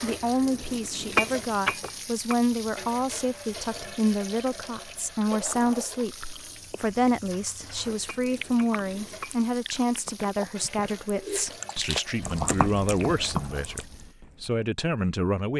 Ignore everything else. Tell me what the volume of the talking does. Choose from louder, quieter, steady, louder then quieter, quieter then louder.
steady.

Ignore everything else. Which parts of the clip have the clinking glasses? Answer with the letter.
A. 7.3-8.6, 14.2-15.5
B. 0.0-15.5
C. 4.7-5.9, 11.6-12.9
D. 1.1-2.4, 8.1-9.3
D.